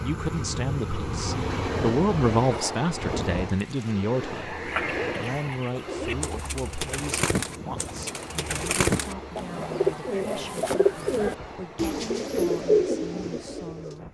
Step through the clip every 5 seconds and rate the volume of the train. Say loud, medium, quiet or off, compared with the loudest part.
loud, medium, medium.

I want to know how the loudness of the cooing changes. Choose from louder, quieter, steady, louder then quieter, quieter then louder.
louder.